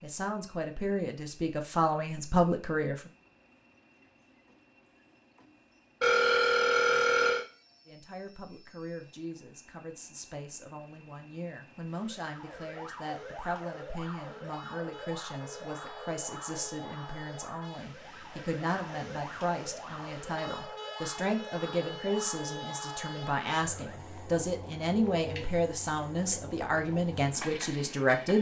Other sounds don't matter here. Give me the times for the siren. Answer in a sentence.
The siren can be heard from 11.9 to 24.0 s.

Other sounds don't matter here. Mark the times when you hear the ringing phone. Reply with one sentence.
You can hear the ringing phone from 6.0 to 7.5 s and from 25.1 to 26.8 s.